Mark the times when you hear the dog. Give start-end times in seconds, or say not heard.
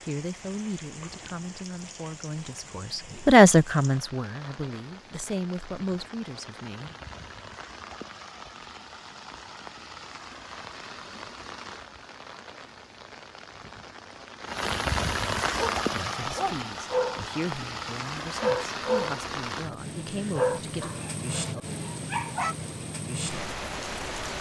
15.6-22.6.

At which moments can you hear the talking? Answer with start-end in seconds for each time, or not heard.
0.0-7.0, 15.9-20.9.